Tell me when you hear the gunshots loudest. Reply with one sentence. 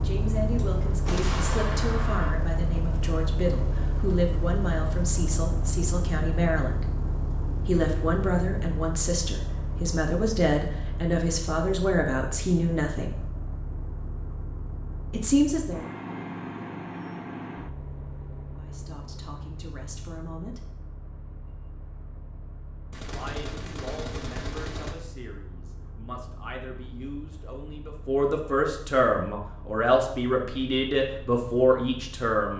The volume of the gunshots peaks at 1 second.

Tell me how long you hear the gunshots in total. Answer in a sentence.
The gunshots can be heard for 4 seconds in total.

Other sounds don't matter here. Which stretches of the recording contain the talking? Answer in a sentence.
You can hear the talking from 0.0 to 6.9 s, from 7.7 to 13.2 s, from 15.1 to 15.8 s, from 18.6 to 20.6 s and from 23.1 to 32.5 s.